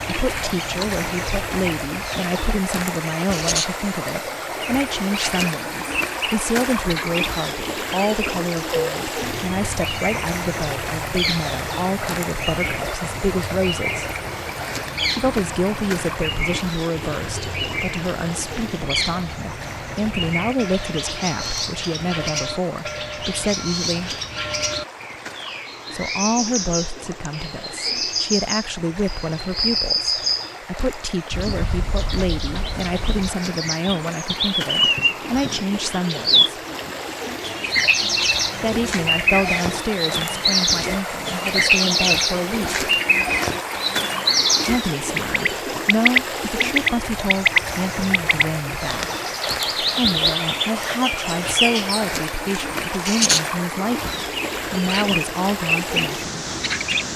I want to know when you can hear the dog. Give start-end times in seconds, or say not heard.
not heard.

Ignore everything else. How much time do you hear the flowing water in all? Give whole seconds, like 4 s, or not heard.
57 s.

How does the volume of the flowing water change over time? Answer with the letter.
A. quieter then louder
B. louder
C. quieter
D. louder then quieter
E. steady
A.